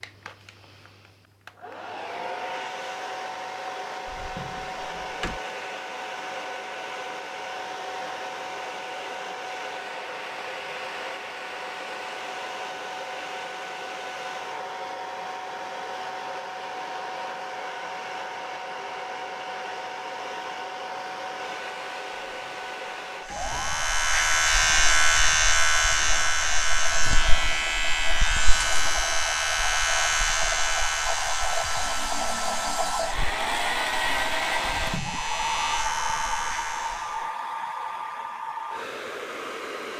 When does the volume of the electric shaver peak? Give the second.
25 s.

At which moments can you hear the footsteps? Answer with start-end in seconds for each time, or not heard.
not heard.